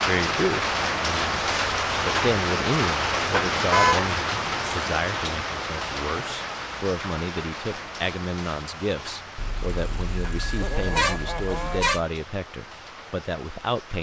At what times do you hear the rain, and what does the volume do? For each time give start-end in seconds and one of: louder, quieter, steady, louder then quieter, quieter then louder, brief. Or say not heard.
0.0-13.9 quieter.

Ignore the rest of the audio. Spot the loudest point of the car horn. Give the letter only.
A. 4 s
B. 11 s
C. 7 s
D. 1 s
A.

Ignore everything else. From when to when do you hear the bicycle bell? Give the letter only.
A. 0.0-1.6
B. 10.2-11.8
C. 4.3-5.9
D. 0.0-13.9
B.